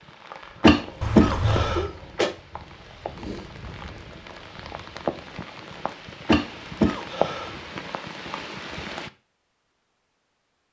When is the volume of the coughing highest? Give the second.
1 s.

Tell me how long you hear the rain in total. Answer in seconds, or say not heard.
9 s.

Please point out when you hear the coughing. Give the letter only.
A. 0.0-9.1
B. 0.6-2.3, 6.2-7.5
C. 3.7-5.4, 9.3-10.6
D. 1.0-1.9
B.